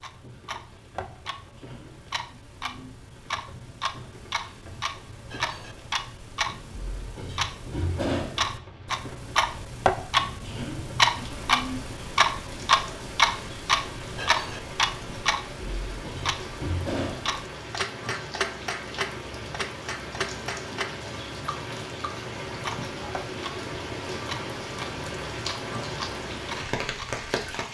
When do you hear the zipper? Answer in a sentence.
You can't hear the zipper here.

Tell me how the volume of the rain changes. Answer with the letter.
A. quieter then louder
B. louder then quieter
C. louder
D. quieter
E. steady
C.